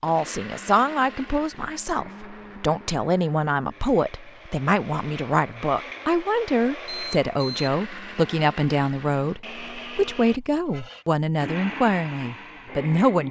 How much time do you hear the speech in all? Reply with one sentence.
The speech can be heard for 13 seconds in total.